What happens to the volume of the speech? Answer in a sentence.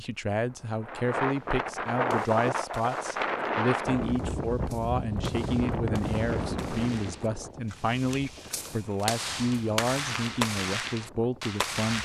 The volume of the speech stays about the same.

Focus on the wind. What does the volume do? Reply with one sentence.
The loudness of the wind goes down.